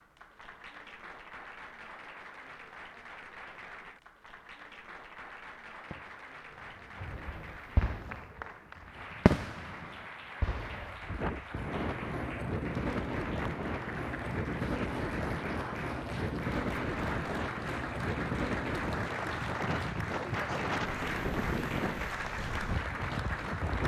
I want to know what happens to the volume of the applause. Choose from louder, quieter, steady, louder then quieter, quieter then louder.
louder.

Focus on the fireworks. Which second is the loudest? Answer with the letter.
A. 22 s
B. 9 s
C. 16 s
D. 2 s
B.